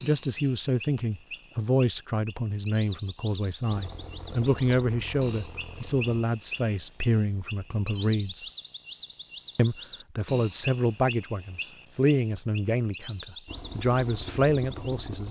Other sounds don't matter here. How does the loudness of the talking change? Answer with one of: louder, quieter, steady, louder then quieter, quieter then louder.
steady.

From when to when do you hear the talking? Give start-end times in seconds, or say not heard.
0.0-8.4, 9.6-15.2.